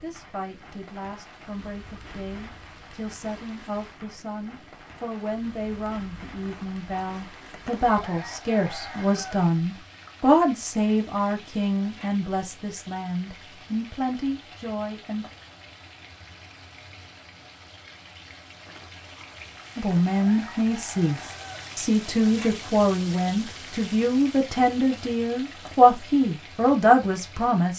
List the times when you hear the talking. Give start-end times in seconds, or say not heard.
0.0-15.2, 19.8-27.7.